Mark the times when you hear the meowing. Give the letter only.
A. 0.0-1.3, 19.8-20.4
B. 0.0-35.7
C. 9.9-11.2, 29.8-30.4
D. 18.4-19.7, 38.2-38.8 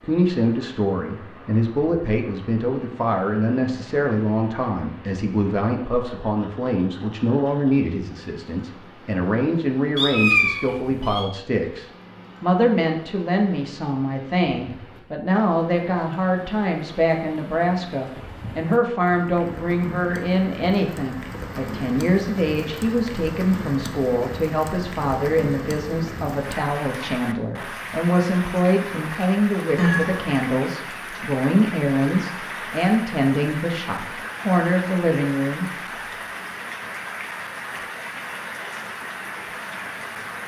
C.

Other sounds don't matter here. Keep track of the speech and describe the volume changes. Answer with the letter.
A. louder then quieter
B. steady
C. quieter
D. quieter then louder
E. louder
B.